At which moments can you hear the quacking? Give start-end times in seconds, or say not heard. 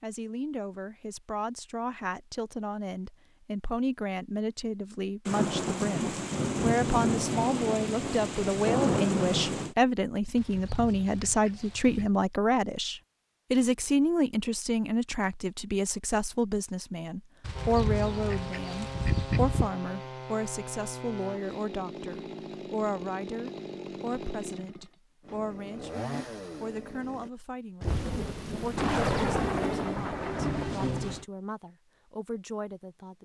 10.3-12.1, 17.4-19.7.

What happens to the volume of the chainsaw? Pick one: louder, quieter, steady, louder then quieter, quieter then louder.
steady.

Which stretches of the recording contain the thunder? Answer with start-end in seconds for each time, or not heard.
5.2-9.8, 27.8-31.2.